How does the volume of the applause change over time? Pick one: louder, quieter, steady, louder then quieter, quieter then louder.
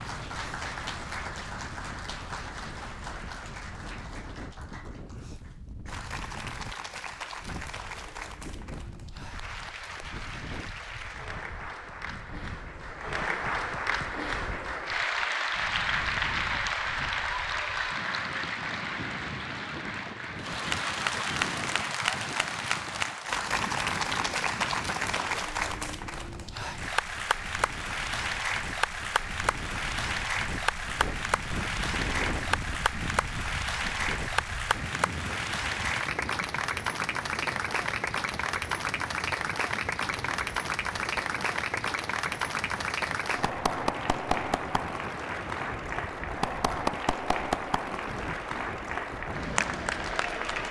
louder.